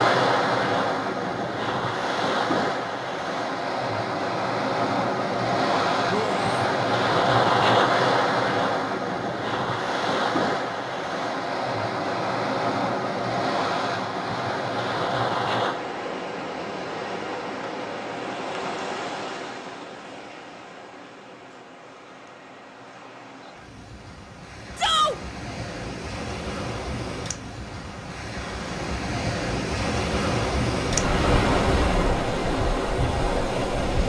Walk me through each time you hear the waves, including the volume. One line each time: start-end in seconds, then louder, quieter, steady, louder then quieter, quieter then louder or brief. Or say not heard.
0.0-34.0 quieter then louder.